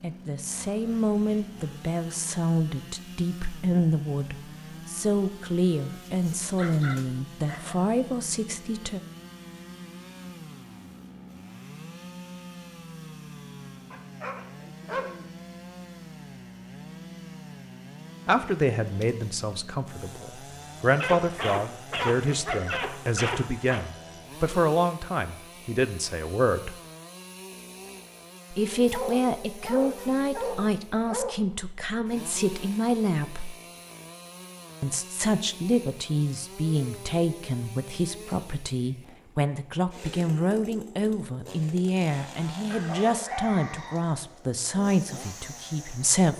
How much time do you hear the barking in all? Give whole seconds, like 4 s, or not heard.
10 s.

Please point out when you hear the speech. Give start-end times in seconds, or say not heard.
0.0-9.0, 18.2-26.8, 28.5-33.5, 34.8-46.3.